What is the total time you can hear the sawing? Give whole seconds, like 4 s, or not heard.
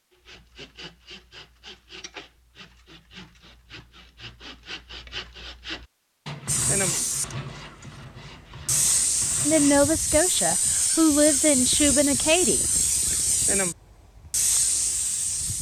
10 s.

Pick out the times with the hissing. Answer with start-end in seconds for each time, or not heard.
6.5-15.5.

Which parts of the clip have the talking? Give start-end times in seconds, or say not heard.
9.4-12.6.